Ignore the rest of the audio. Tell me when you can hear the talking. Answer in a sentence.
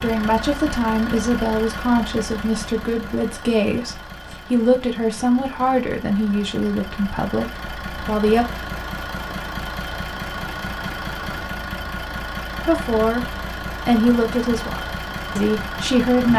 The talking can be heard from 0.0 to 8.4 s, from 12.7 to 13.2 s and from 13.8 to 16.3 s.